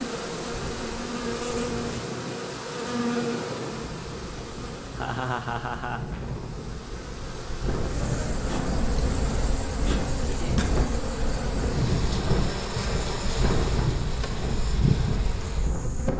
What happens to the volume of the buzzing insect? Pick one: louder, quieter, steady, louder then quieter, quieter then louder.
quieter then louder.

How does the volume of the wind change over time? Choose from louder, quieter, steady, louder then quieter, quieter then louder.
louder.